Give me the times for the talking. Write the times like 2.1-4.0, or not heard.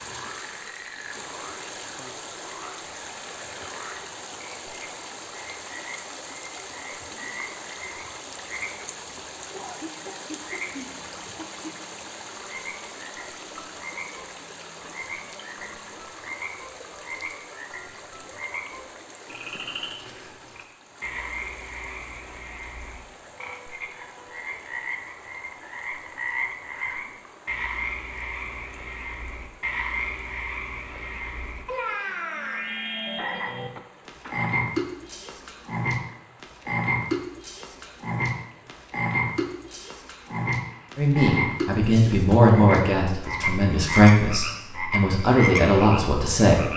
41.0-46.6.